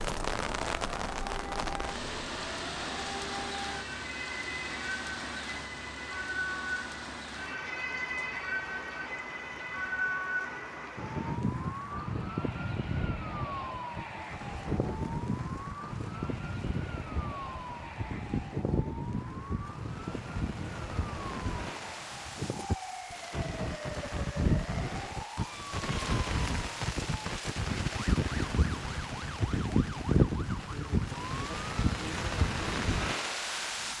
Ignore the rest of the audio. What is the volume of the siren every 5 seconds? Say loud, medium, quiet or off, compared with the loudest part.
medium, loud, loud, loud, medium, medium, medium.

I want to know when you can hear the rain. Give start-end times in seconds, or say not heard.
0.0-33.9.